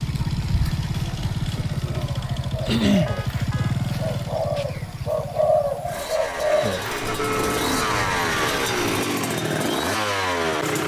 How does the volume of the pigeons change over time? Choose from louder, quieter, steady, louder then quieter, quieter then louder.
louder then quieter.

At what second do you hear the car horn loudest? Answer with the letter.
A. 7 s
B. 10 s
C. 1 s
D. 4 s
A.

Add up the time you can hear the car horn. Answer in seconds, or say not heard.
3 s.